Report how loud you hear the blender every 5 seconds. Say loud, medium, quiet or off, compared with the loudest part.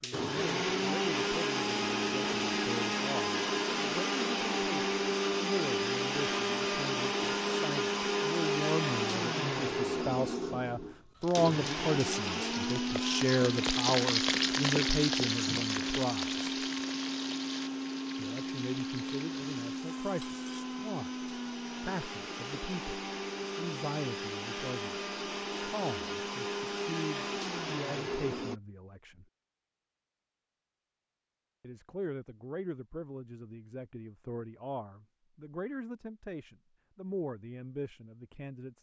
loud, loud, loud, medium, medium, medium, off, off.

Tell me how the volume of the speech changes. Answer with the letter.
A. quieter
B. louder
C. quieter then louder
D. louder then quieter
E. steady
D.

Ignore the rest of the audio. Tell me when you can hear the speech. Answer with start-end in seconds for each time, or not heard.
0.0-16.4, 18.1-29.2, 31.6-38.7.